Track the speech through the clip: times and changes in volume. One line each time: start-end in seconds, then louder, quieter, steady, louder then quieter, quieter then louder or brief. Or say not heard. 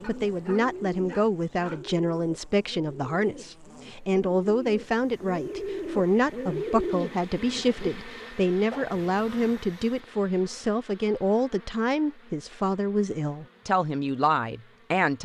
0.1-15.2 steady.